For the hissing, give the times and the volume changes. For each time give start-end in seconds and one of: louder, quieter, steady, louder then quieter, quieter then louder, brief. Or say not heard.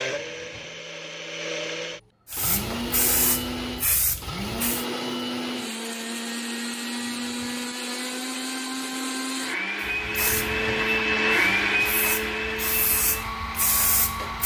2.2-4.8 brief
9.8-14.4 quieter then louder.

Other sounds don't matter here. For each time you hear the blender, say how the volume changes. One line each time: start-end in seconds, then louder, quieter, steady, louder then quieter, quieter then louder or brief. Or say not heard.
0.0-14.4 louder.